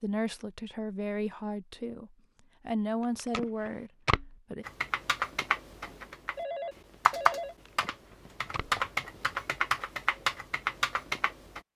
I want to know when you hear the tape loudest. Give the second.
4 s.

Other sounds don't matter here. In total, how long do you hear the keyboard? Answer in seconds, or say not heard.
7 s.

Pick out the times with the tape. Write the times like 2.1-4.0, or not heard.
3.0-4.3, 7.5-8.8.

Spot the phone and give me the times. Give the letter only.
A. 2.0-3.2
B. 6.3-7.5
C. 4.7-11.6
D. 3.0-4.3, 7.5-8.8
B.